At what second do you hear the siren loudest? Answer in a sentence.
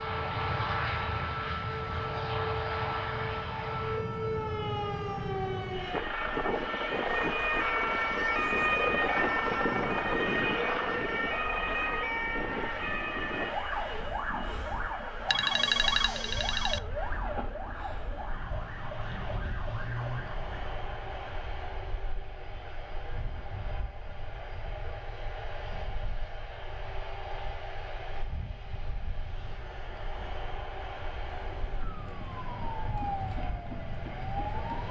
The loudest moment of the siren is at 9 seconds.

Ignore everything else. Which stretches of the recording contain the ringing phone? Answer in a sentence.
You can hear the ringing phone from 15.2 to 16.8 s.